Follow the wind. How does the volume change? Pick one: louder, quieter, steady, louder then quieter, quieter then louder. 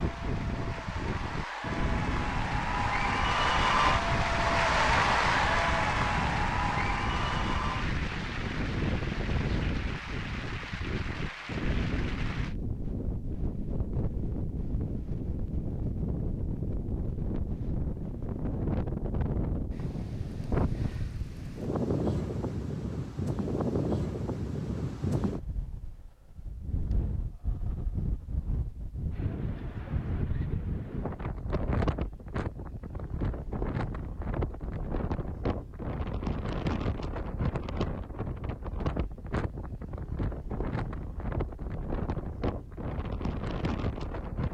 steady.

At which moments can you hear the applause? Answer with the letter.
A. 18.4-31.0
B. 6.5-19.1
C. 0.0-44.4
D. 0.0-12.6
D.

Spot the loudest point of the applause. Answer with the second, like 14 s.
5 s.